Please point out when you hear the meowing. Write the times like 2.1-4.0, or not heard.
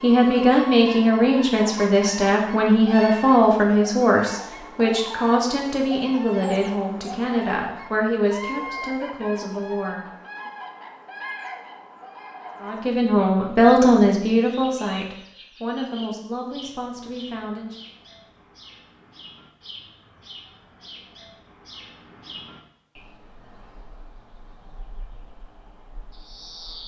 not heard.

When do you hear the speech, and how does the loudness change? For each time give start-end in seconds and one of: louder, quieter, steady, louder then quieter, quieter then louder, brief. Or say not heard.
0.0-10.5 quieter
12.6-17.9 quieter.